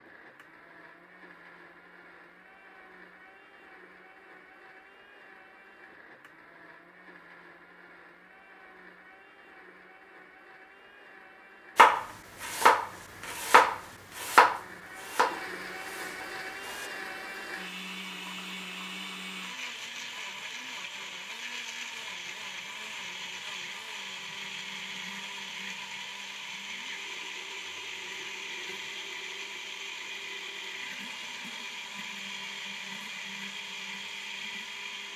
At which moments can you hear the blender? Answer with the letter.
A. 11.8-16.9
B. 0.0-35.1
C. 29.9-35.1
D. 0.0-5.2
B.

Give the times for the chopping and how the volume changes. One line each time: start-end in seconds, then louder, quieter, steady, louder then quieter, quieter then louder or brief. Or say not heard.
11.8-16.9 quieter.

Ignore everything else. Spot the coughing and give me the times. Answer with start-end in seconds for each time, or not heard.
not heard.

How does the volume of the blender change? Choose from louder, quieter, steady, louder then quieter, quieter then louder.
louder.